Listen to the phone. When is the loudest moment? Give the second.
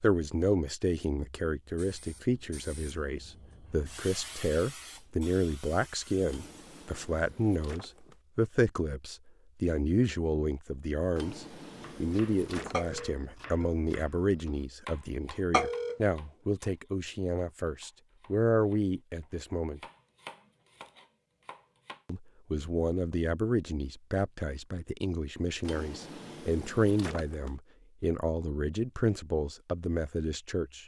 16 s.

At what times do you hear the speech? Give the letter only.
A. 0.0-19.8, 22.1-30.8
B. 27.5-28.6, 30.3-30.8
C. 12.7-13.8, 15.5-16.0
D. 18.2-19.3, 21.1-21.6
A.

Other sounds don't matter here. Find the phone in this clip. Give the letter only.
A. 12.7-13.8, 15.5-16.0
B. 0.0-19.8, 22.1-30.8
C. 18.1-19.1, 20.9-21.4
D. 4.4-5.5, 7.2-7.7
A.